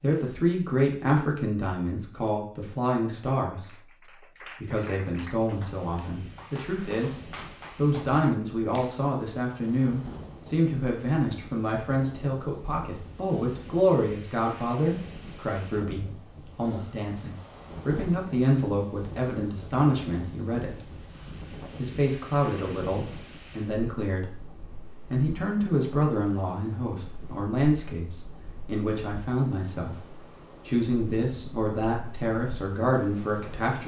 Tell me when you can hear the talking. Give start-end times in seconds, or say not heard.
0.0-20.9, 21.8-24.2, 25.1-33.8.